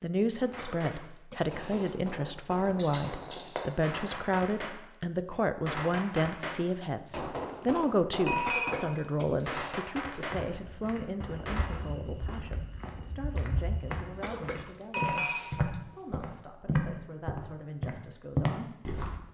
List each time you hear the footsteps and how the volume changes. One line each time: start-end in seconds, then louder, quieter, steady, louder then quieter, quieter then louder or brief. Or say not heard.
10.3-19.2 louder.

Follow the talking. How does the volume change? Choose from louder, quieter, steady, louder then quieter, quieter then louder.
quieter.